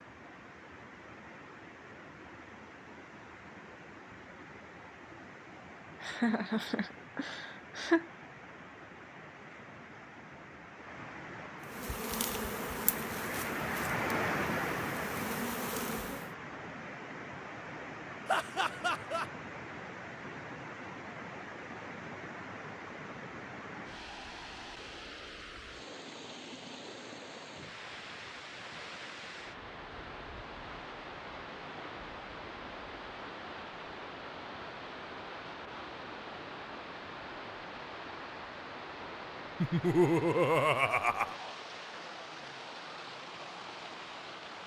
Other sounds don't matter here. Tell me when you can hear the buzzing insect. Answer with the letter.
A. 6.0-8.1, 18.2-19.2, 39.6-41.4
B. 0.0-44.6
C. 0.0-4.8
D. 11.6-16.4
D.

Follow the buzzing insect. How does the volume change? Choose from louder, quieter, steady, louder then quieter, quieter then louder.
quieter then louder.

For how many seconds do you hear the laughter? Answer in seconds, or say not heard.
5 s.